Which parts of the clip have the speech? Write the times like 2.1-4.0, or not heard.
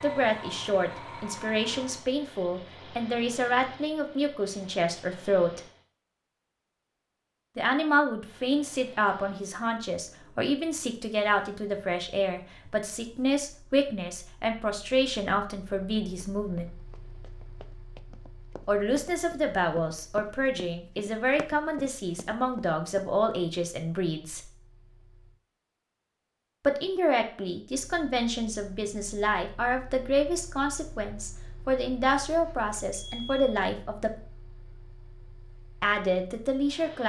0.0-5.6, 7.5-16.7, 18.6-24.4, 26.6-34.1, 35.8-37.0.